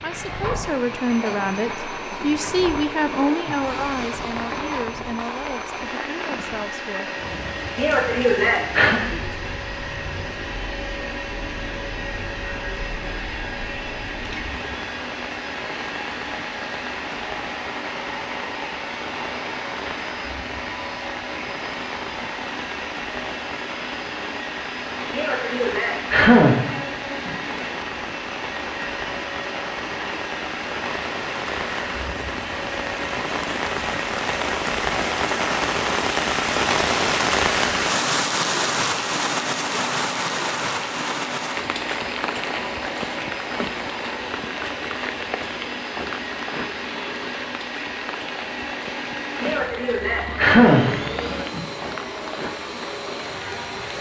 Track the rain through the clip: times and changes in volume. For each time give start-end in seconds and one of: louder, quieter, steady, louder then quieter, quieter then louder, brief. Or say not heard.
0.0-53.9 louder then quieter.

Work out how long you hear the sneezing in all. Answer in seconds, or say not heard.
6 s.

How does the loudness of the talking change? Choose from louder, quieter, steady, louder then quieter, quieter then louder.
quieter.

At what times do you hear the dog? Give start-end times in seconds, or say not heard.
not heard.